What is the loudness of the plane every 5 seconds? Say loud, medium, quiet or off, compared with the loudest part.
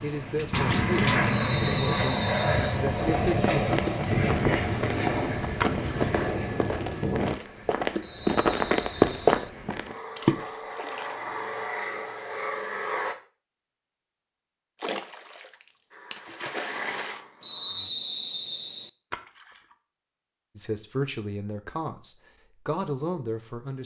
loud, medium, medium, quiet, off.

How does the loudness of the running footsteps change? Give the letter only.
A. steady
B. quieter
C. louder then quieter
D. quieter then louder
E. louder
E.